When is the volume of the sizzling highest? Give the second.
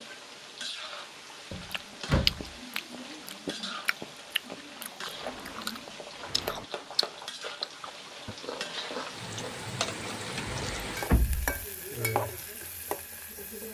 12 s.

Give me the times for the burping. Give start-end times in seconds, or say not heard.
not heard.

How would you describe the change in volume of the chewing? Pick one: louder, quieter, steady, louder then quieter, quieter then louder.
quieter.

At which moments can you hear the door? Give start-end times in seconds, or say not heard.
1.5-2.5, 5.2-6.7, 10.4-11.7.